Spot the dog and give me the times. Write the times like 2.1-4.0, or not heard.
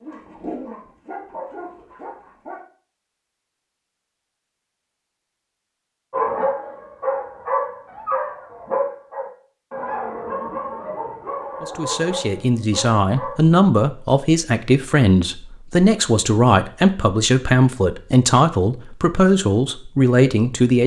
0.0-2.6, 6.1-13.6.